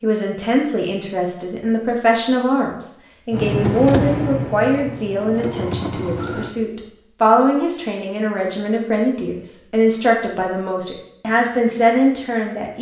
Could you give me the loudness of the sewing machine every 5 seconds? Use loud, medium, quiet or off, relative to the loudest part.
loud, medium, off.